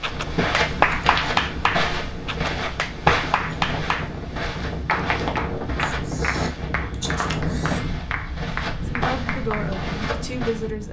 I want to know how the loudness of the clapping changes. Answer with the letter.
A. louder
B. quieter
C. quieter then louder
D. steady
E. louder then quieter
B.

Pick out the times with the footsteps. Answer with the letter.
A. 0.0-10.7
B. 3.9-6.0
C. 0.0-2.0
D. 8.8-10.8
A.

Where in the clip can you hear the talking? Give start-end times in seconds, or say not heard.
8.8-10.8.